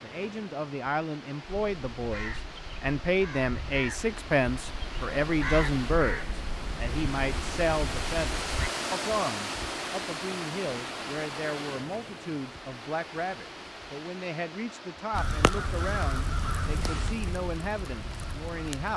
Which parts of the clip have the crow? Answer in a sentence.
You can hear the crow from 1.4 to 8.7 s and from 15.1 to 18.9 s.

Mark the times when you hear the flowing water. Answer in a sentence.
The flowing water can be heard from 0.0 to 18.9 s.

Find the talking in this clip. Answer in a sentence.
You can hear the talking from 0.0 to 18.9 s.